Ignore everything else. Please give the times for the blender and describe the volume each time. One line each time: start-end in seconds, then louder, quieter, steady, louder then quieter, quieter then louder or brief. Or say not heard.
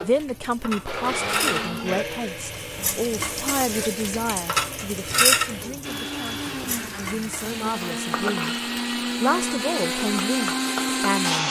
0.0-11.4 quieter then louder.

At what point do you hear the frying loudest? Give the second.
5 s.